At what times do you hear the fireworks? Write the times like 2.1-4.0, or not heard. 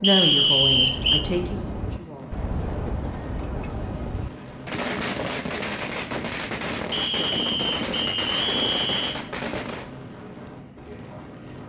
0.6-9.9.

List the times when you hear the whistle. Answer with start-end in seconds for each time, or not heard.
0.0-1.2, 6.9-9.2.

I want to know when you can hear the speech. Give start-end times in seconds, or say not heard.
0.0-2.4.